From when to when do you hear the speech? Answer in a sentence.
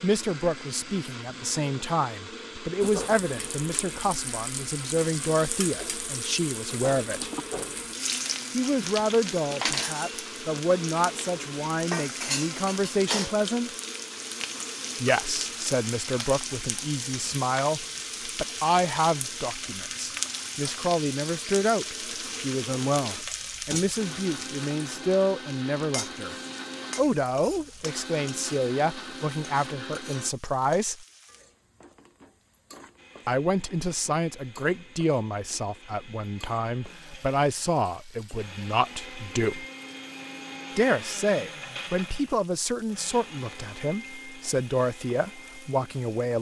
The speech can be heard from 0.0 to 7.3 s, from 8.5 to 13.7 s, from 15.0 to 26.4 s, from 26.9 to 31.1 s, from 33.2 to 39.6 s and from 40.8 to 46.3 s.